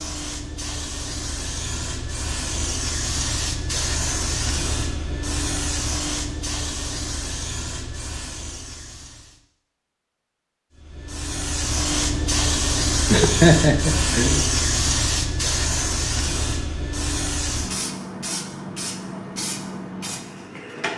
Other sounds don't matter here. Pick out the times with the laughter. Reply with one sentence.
The laughter can be heard from 13.1 to 14.4 s.